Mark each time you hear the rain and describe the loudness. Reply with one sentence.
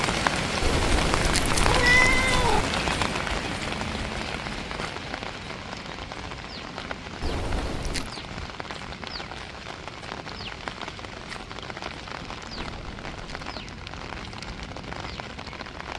The rain can be heard from 0.0 to 15.9 s, getting quieter.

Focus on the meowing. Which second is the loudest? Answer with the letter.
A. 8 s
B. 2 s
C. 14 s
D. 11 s
B.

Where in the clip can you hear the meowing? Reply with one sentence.
The meowing can be heard from 0.6 to 2.6 s, from 7.2 to 8.1 s and from 12.6 to 13.5 s.